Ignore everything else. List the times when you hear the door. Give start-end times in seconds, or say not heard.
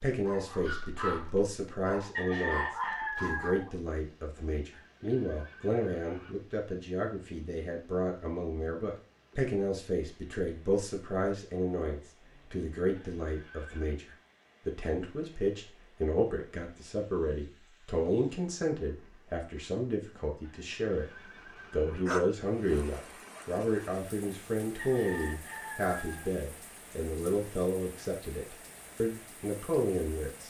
not heard.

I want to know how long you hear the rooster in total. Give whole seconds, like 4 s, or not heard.
3 s.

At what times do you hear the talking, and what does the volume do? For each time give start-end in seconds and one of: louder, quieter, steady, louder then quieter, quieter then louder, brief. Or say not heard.
0.0-30.4 steady.